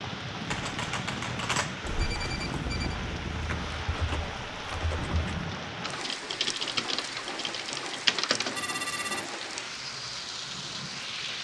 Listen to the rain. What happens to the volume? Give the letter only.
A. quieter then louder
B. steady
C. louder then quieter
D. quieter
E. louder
B.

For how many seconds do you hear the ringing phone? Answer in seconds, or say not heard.
2 s.